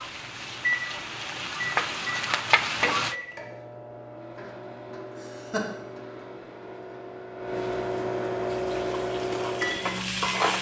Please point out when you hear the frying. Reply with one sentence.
You can hear the frying from 0.0 to 3.1 s and from 8.4 to 10.5 s.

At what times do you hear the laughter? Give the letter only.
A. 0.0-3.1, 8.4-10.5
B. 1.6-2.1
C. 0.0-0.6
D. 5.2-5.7
D.